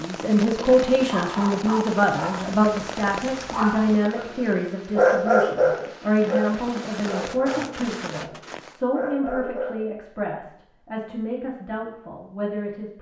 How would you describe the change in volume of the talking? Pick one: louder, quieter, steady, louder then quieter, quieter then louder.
quieter.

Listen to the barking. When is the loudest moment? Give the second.
5 s.